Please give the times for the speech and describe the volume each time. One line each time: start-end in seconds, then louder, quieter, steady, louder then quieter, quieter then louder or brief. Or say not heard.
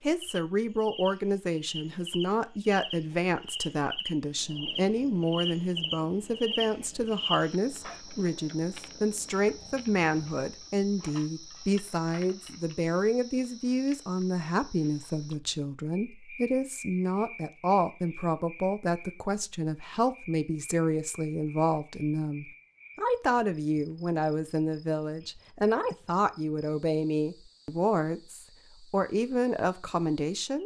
0.0-30.6 steady.